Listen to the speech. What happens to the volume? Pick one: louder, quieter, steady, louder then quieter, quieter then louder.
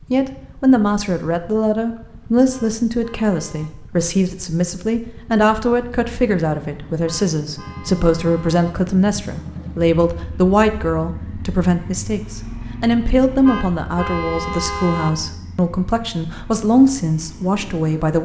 steady.